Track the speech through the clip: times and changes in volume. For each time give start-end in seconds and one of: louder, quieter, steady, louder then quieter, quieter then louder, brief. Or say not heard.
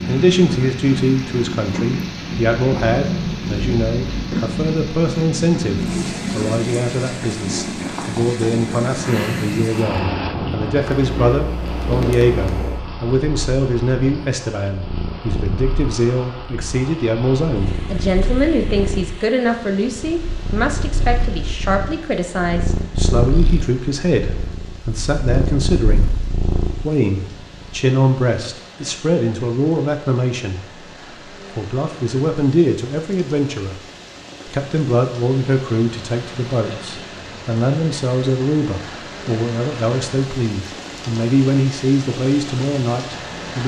0.1-30.6 steady
31.6-33.8 brief
34.5-43.6 steady.